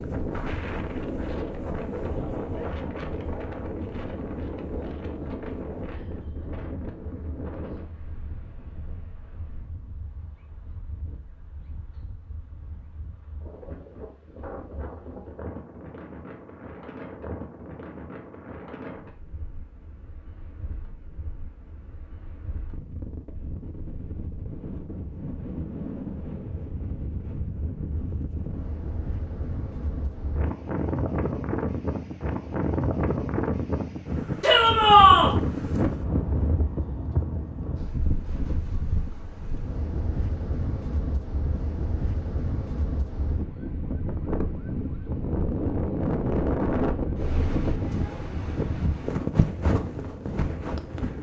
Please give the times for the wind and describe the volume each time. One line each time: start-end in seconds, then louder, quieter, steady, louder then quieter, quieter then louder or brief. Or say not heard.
0.0-51.1 quieter then louder.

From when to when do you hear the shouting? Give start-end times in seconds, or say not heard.
34.4-35.4.